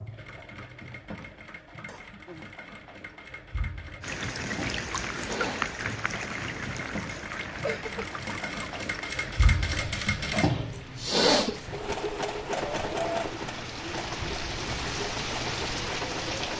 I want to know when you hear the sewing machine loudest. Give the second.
11 s.